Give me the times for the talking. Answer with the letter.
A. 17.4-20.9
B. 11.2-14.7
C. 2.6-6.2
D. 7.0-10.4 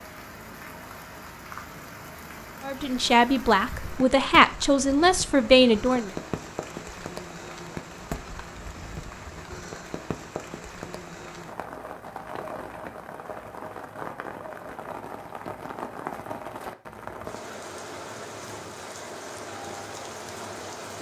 C.